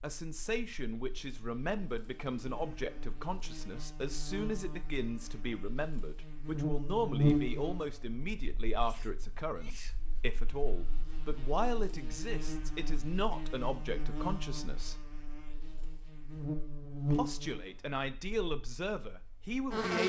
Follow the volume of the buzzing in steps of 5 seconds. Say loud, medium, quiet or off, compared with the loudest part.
quiet, loud, medium, loud.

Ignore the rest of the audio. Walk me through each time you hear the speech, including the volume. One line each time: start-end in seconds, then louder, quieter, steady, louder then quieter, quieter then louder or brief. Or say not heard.
0.0-14.9 steady
17.1-20.0 brief.